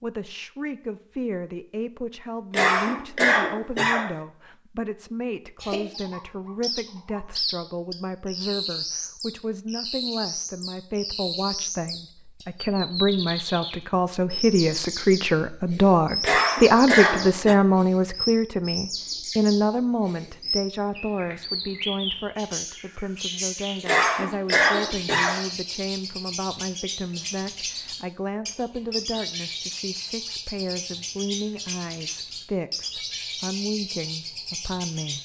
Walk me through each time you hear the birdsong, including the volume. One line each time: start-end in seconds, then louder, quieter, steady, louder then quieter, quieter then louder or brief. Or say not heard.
5.6-35.1 steady.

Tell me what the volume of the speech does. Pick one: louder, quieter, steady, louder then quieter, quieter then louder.
louder then quieter.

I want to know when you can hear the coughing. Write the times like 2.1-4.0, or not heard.
2.5-4.2, 16.2-17.6, 23.9-25.4.